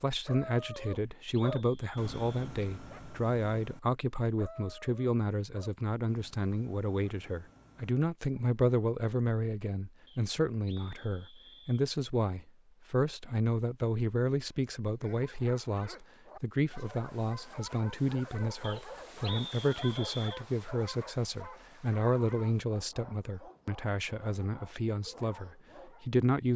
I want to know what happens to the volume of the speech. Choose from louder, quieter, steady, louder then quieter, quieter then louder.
steady.